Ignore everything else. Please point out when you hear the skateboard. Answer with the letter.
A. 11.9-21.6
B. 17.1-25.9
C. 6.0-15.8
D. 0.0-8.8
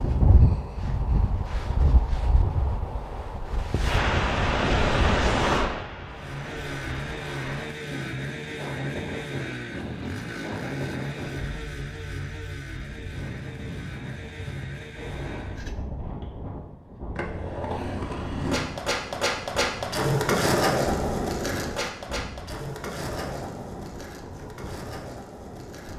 B.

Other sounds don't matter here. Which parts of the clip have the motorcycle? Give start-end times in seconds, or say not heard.
6.0-15.8.